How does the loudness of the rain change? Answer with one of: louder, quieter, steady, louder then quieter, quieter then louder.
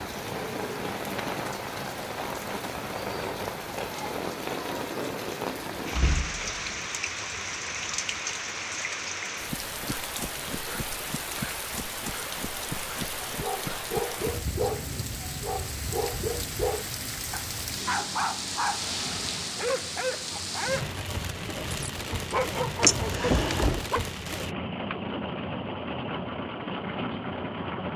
steady.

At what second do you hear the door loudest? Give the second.
23 s.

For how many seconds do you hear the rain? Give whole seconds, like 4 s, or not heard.
28 s.